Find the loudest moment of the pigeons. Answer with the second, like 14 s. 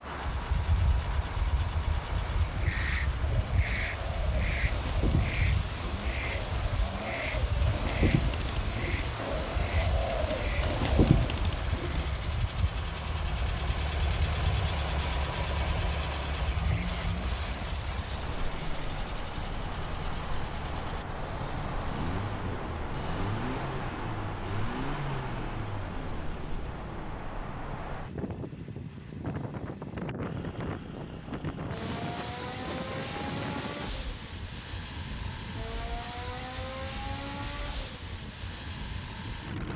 11 s.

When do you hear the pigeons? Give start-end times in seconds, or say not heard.
2.6-12.1.